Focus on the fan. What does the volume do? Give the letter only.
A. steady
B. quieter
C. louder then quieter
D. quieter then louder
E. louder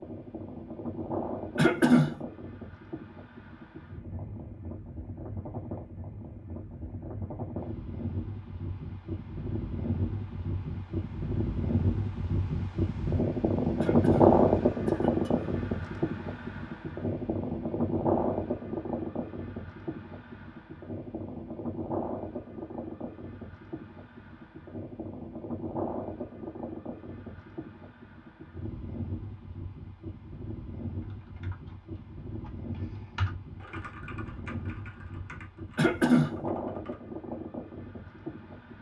C.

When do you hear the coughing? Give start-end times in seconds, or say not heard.
1.6-2.2, 13.8-15.5, 35.8-36.4.